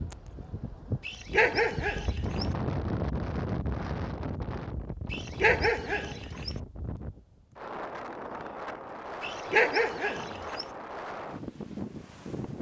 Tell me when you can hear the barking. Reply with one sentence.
You can hear the barking from 1.1 to 2.5 s, from 5.1 to 6.5 s and from 9.2 to 10.7 s.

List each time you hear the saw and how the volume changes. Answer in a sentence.
The saw can't be heard in this clip.